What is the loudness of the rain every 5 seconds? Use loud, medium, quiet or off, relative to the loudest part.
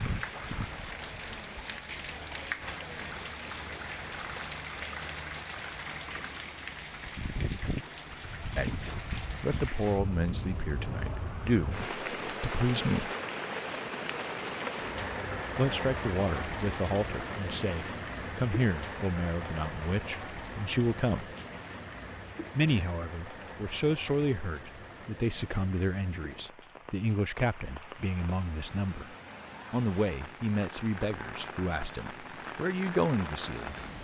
loud, loud, loud, loud, medium, medium, medium.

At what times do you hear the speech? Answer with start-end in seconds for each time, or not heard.
8.6-13.1, 15.6-21.3, 22.6-33.8.